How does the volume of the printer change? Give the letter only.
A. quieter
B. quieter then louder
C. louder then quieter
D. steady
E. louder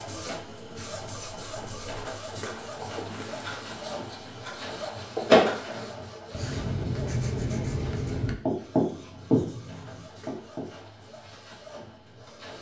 C.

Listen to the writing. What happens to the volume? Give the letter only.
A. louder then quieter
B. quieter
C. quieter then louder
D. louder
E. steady
D.